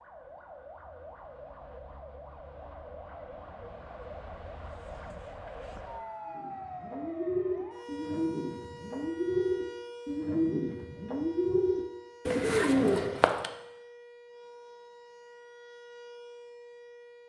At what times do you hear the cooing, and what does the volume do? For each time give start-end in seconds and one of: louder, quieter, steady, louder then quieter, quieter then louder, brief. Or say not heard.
6.3-13.5 louder.